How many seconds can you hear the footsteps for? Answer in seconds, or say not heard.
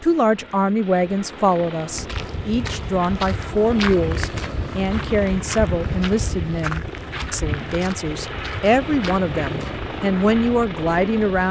8 s.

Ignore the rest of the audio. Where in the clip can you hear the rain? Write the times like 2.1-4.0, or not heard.
not heard.